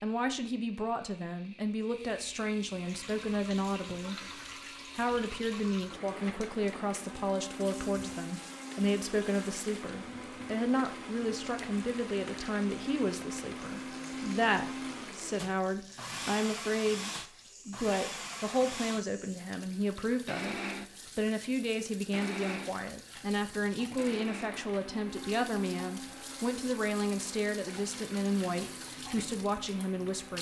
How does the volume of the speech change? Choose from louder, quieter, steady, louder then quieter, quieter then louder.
steady.